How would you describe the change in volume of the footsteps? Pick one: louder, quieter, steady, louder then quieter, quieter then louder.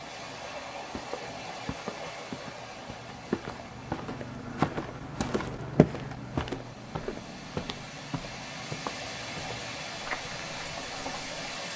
louder then quieter.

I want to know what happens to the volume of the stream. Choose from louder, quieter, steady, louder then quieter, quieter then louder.
quieter then louder.